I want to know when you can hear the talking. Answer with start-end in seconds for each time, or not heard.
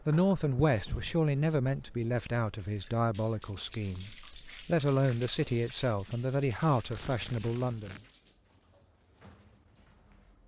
0.1-8.0.